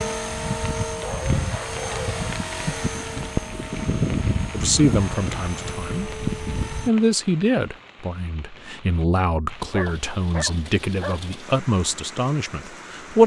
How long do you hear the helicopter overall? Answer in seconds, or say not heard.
7 s.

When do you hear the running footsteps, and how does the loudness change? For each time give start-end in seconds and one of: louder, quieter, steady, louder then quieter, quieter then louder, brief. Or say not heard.
not heard.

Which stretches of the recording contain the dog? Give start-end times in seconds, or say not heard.
1.0-2.4, 9.6-11.2.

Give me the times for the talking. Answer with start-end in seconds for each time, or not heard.
4.5-13.2.